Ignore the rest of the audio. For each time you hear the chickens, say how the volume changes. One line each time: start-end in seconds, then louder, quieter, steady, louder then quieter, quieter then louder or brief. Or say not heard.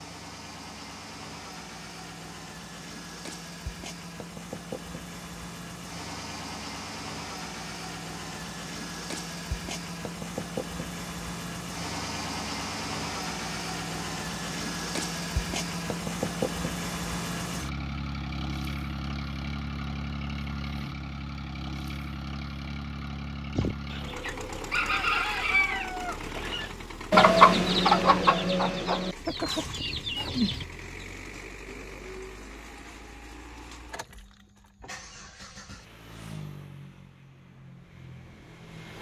23.6-30.6 louder then quieter.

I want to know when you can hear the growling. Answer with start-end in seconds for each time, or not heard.
not heard.